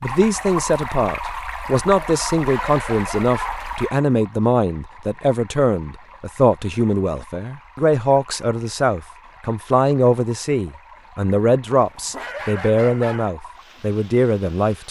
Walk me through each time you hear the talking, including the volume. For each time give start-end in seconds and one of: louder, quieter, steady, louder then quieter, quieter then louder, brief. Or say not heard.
0.0-14.8 steady.